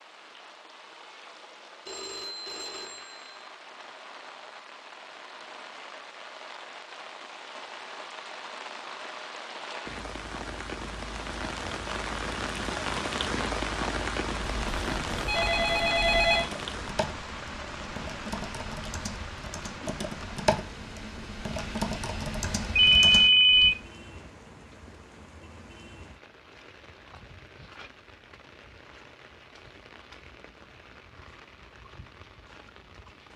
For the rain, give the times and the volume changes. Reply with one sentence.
You can hear the rain from 0.0 to 33.3 s, getting louder then quieter.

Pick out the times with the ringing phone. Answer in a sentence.
The ringing phone can be heard from 1.9 to 3.5 s, from 14.4 to 16.4 s and from 22.8 to 23.8 s.